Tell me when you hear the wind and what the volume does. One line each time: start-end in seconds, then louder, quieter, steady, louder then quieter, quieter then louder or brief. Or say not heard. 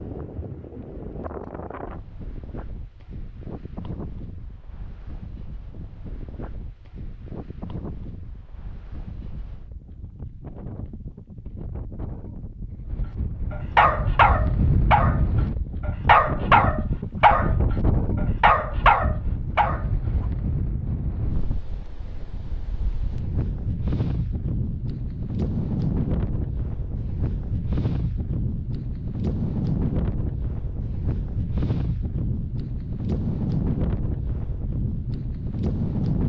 0.0-36.2 louder.